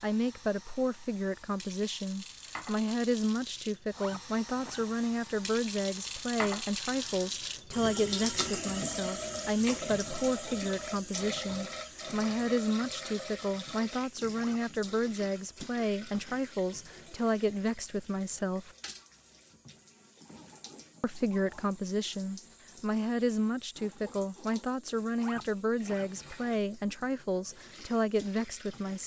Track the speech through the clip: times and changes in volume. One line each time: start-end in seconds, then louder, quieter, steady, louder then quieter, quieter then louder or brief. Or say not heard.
0.0-18.7 steady
21.0-29.0 steady.